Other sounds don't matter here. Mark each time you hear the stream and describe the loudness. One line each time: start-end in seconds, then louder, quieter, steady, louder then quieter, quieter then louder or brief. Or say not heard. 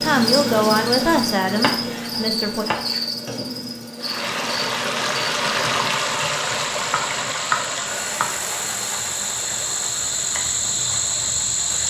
4.0-11.8 quieter.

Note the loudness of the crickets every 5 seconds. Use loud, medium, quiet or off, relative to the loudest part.
loud, medium, loud.